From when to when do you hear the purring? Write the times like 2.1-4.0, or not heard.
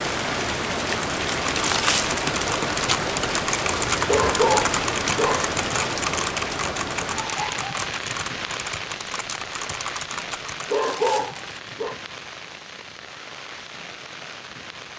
not heard.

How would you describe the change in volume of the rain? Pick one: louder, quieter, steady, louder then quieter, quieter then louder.
quieter.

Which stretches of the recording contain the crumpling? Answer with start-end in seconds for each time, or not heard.
1.5-2.2, 10.7-11.4.